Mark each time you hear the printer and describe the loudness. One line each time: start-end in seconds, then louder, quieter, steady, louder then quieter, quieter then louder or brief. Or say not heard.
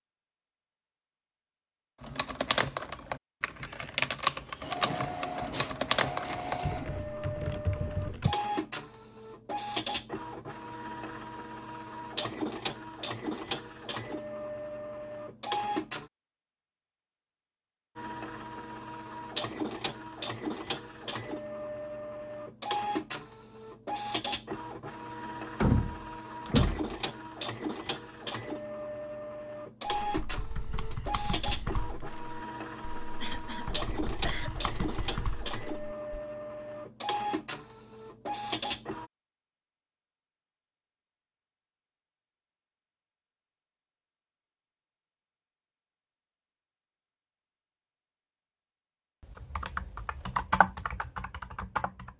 4.6-16.1 steady
17.9-39.1 steady.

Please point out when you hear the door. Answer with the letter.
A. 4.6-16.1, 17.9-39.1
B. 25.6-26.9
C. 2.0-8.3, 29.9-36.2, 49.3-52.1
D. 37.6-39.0
B.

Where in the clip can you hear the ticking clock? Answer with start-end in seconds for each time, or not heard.
not heard.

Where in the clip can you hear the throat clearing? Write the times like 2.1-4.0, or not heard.
33.2-34.5.